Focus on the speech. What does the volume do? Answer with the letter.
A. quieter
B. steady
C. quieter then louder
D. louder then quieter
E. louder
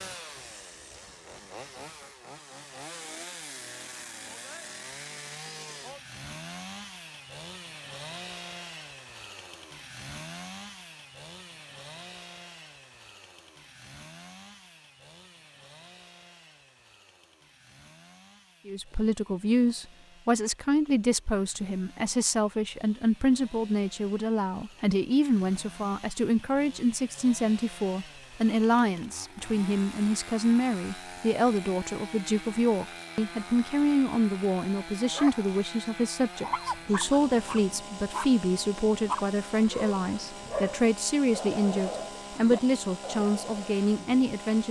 B.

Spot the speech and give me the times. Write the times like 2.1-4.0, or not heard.
18.6-44.6.